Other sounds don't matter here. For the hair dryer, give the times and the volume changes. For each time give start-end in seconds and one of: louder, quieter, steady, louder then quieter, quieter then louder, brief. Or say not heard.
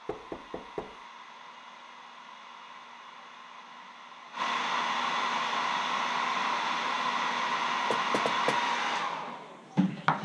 0.0-10.2 louder.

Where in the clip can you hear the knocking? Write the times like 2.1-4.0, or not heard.
0.1-1.0, 7.9-8.6.